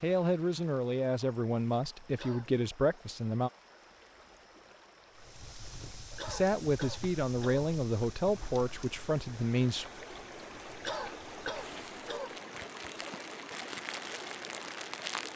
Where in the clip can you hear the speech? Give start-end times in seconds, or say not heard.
0.0-3.5, 6.2-9.8.